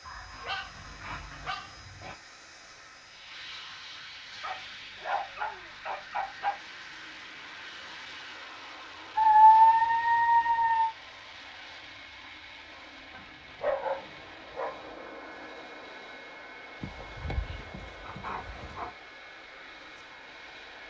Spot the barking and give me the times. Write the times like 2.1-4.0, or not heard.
0.1-2.1, 4.4-6.5, 9.2-10.9, 13.1-14.8, 16.8-18.9.